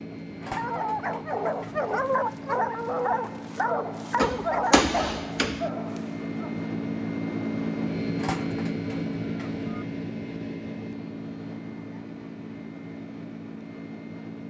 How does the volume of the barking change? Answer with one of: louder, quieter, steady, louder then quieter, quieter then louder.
quieter.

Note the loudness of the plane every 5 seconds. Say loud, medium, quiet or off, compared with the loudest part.
medium, loud, medium.